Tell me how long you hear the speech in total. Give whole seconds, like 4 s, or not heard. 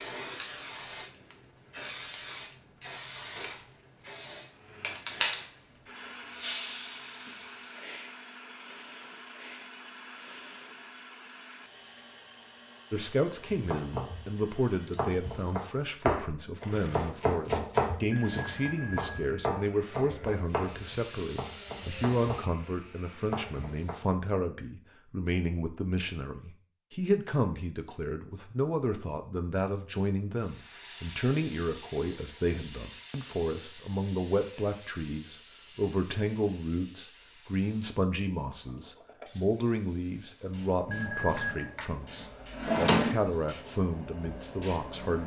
32 s.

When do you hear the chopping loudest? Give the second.
18 s.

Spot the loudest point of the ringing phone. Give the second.
41 s.